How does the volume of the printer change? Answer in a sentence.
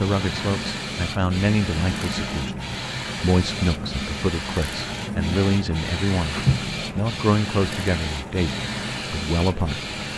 The loudness of the printer stays about the same.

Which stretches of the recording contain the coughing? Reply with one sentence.
You can't hear the coughing here.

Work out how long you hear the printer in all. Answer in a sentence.
You can hear the printer for 10 seconds altogether.